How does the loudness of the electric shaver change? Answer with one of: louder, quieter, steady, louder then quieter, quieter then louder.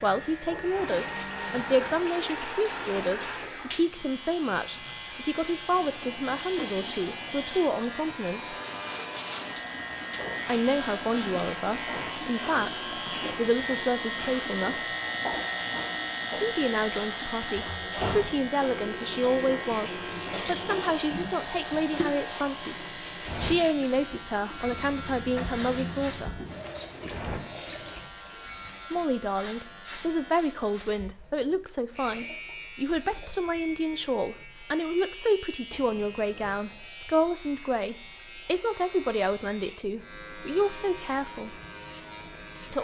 louder then quieter.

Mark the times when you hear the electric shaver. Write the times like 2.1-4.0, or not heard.
0.0-42.8.